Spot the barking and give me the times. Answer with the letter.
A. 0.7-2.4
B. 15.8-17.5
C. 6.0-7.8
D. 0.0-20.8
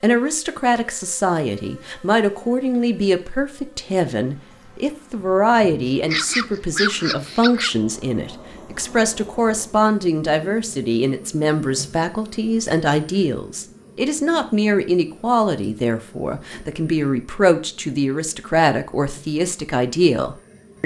C.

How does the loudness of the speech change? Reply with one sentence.
The loudness of the speech stays about the same.